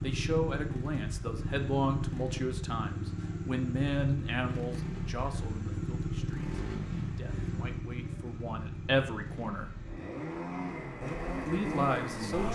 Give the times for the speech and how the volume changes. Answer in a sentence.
The speech can be heard from 0.0 to 9.7 s, getting quieter then louder; and briefly from 11.4 to 12.5 s.